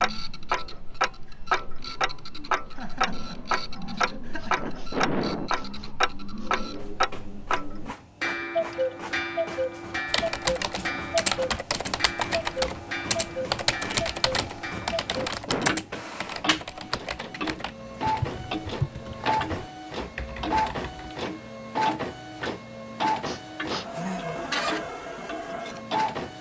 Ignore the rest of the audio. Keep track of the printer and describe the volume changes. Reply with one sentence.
The loudness of the printer goes up.